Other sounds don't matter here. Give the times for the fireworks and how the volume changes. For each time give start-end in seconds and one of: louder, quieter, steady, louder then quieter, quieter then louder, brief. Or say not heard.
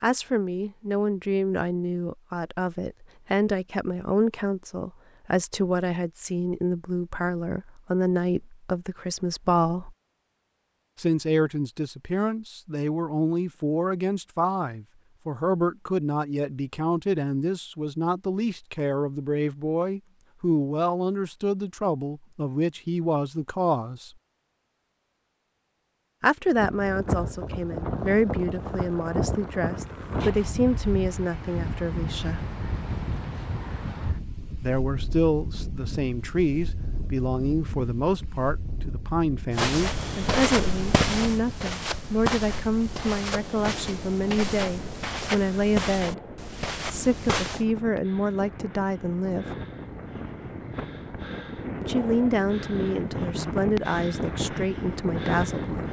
not heard.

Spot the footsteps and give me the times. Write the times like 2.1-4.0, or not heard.
39.5-47.6.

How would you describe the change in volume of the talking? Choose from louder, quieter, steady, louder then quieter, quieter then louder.
steady.